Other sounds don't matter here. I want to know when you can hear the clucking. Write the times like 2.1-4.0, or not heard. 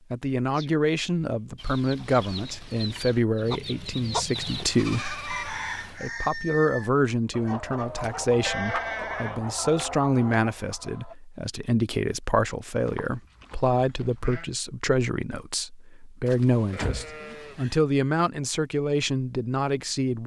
1.6-11.2.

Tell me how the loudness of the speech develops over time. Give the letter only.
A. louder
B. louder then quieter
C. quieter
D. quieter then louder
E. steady
E.